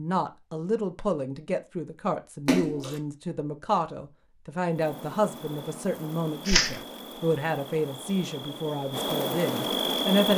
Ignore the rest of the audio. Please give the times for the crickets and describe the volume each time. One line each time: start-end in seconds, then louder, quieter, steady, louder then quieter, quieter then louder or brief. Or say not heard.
4.7-10.3 louder.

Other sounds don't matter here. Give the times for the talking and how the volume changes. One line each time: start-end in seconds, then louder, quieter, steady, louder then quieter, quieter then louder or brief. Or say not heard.
0.0-10.3 steady.